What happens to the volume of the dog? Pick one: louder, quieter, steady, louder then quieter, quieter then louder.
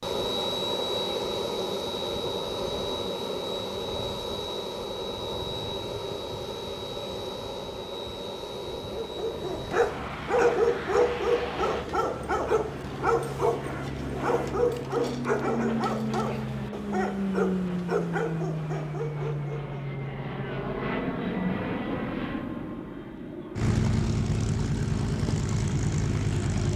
quieter.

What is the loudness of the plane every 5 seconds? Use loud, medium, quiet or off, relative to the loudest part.
loud, medium, medium, loud, loud, loud.